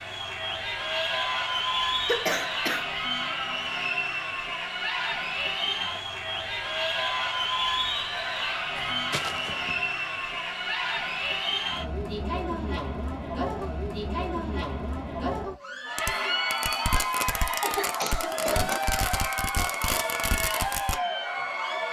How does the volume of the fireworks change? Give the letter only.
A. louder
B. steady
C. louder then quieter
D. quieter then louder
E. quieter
B.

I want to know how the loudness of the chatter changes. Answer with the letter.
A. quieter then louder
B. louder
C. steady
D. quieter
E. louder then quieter
C.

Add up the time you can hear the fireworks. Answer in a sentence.
The fireworks can be heard for 5 seconds in total.